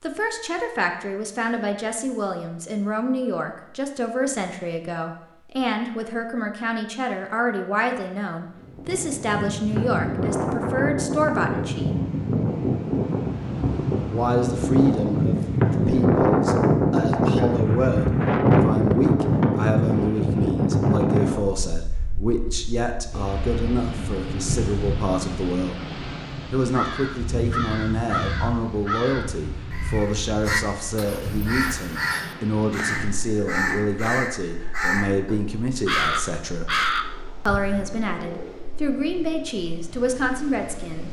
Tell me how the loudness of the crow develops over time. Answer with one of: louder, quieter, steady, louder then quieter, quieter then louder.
louder.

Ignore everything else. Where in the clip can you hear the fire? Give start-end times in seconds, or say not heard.
not heard.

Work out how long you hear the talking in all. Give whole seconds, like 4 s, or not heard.
37 s.